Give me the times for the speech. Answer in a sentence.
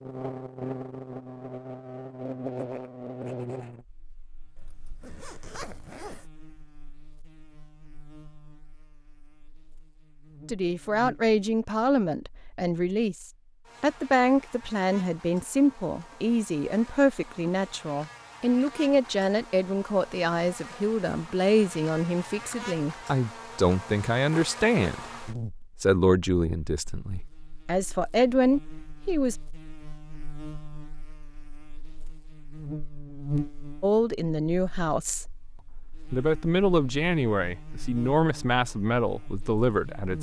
You can hear the speech from 10.4 to 25.1 s, from 25.8 to 29.4 s and from 33.8 to 40.1 s.